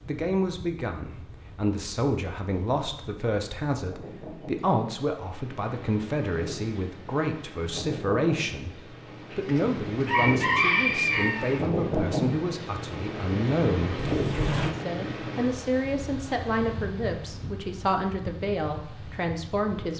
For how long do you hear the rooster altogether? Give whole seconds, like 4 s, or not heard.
2 s.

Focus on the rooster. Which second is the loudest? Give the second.
11 s.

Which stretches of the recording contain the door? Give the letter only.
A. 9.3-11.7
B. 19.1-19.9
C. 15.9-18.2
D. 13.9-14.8
D.